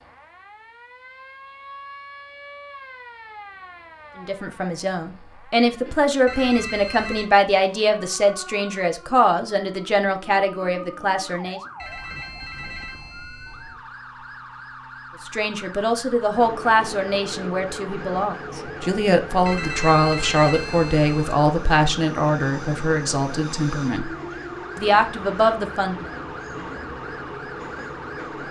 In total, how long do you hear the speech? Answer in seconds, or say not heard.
18 s.